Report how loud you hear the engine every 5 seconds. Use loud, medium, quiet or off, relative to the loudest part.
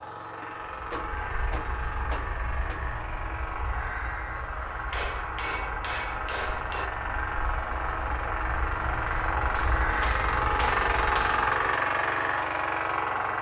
medium, medium, loud.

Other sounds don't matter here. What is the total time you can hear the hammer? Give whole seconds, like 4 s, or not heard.
7 s.